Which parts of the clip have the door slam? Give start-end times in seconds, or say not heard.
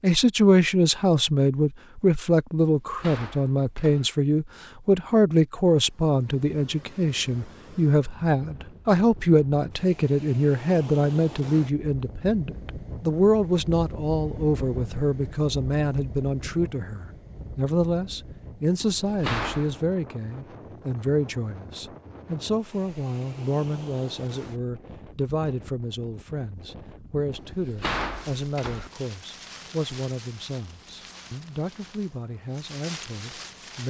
2.8-4.1, 18.8-19.8, 27.4-28.9.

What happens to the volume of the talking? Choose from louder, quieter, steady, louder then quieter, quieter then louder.
quieter.